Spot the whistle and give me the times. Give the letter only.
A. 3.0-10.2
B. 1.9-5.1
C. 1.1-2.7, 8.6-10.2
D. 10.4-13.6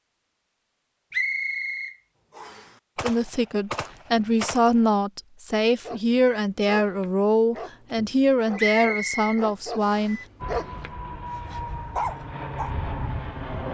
C.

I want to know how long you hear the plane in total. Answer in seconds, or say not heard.
3 s.